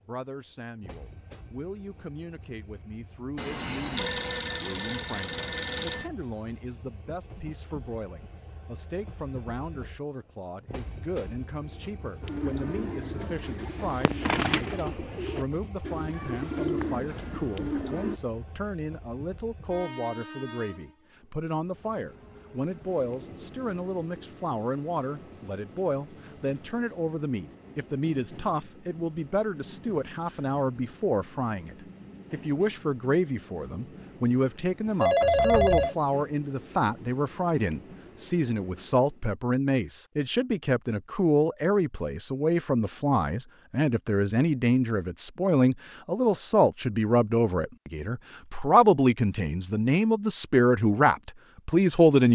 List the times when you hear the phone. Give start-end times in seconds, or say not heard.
3.4-6.1, 35.0-36.0.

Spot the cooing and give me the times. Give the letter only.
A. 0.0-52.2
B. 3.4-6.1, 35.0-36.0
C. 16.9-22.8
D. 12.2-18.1
D.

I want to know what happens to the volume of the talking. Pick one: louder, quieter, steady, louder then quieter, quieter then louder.
louder.